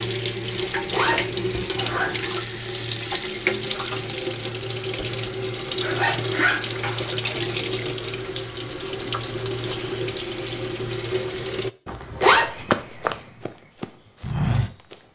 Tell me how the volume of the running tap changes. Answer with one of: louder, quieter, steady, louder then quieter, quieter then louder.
steady.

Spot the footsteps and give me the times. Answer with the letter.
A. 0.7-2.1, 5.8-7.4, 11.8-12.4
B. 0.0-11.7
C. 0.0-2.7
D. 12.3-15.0
D.